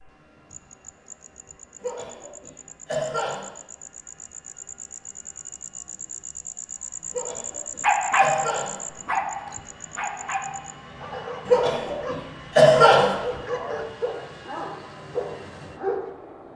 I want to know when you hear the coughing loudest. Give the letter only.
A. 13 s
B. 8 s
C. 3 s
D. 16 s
A.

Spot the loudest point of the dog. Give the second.
8 s.